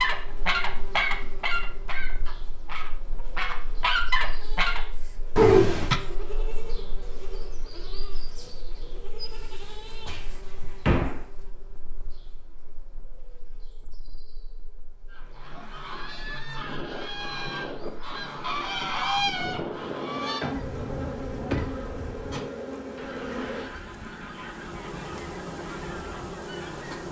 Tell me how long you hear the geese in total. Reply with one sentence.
You can hear the geese for 17 seconds altogether.